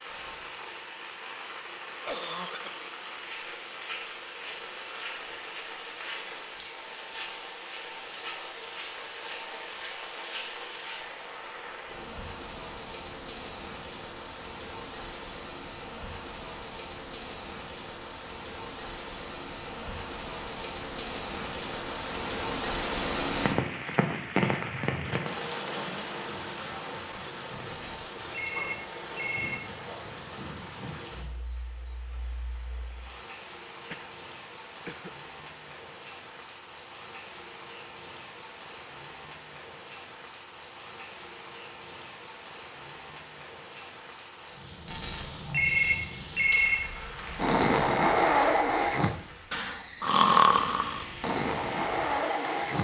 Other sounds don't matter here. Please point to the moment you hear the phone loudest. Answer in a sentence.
The volume of the phone peaks at 46 seconds.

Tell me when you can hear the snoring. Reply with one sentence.
The snoring can be heard from 47.4 to 52.7 s.